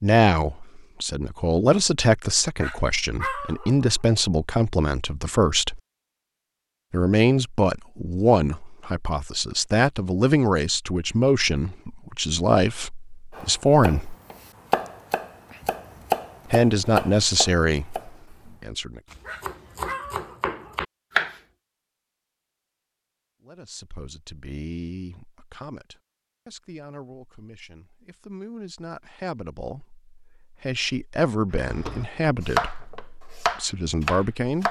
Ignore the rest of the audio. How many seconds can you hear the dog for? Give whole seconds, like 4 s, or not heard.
3 s.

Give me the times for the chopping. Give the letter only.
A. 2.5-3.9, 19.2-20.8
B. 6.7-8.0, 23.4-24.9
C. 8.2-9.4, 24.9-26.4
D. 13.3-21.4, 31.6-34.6
D.